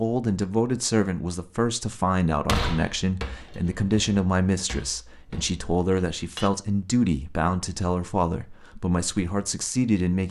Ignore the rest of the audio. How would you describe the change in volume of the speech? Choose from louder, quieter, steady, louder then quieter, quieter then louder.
steady.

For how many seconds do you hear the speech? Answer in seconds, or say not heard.
10 s.